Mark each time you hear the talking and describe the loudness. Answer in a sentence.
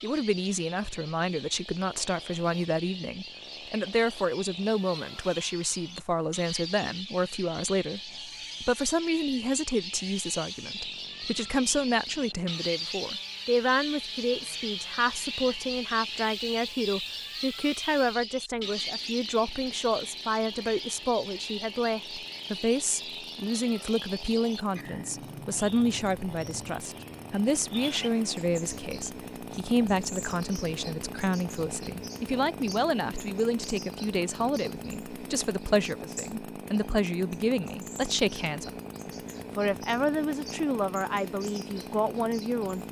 The talking can be heard from 0.0 to 42.8 s, at a steady volume.